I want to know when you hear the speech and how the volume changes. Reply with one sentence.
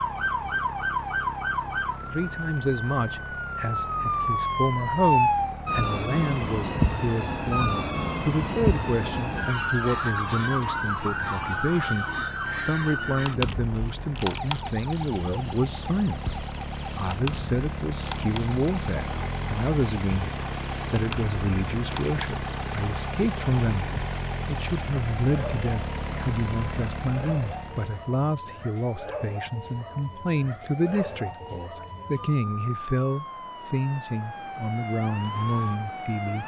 The speech can be heard from 2.1 to 36.4 s, at a steady volume.